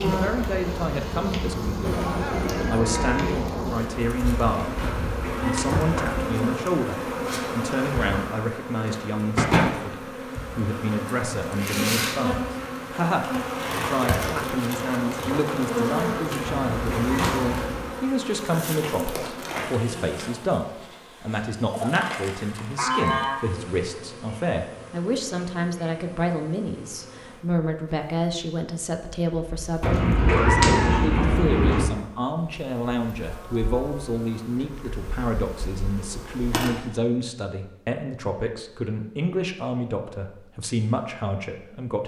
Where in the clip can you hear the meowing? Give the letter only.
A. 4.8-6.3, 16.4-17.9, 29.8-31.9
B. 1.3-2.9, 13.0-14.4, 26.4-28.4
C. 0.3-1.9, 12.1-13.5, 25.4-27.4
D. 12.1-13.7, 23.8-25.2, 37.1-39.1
A.